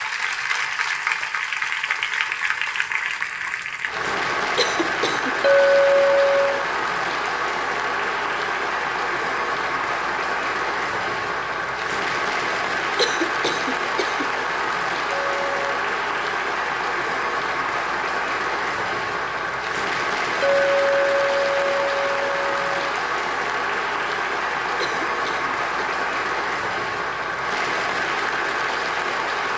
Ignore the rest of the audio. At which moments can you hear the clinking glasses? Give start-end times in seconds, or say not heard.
5.4-6.7, 15.1-15.6, 20.4-22.7.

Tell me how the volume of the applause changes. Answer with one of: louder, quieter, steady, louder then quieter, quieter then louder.
steady.